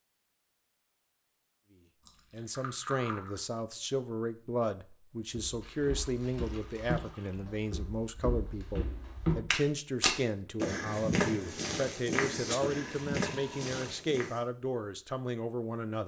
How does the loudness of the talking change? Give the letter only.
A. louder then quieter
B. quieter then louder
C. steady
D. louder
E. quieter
C.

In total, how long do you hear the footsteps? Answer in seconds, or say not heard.
9 s.